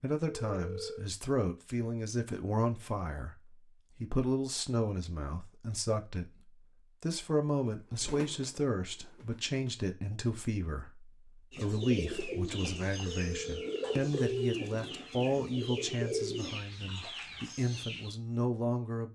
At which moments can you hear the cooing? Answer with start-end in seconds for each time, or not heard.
11.5-18.1.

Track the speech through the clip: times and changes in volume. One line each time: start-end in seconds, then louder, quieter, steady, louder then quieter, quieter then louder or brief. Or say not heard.
0.0-19.1 steady.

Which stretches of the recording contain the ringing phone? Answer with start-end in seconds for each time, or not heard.
0.2-1.1, 13.1-13.9.